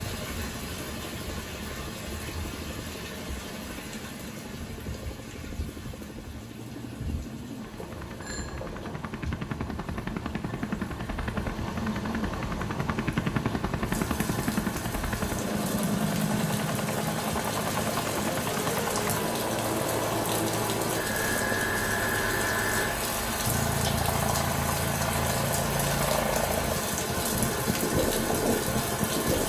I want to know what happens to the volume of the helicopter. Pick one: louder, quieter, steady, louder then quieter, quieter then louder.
louder.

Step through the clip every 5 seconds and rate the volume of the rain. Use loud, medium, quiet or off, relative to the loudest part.
medium, quiet, medium, medium, loud, loud.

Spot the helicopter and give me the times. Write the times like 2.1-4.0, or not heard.
0.0-29.4.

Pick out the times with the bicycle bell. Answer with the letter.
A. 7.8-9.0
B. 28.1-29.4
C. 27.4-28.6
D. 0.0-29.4
A.